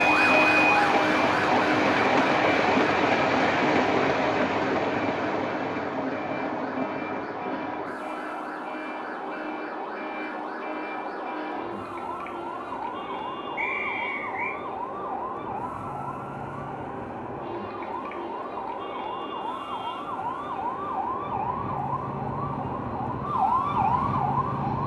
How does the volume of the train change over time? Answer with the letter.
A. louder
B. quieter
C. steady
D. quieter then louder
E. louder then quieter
B.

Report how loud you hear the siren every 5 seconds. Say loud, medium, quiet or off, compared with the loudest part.
loud, medium, medium, medium, loud.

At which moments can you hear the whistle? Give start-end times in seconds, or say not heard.
13.6-14.6.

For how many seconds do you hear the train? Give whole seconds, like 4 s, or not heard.
25 s.